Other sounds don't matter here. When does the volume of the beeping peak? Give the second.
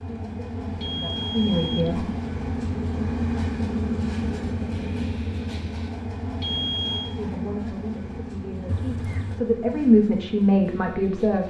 7 s.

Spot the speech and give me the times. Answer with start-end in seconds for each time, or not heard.
0.0-2.1, 7.2-11.4.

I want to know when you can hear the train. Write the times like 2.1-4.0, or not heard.
0.0-11.4.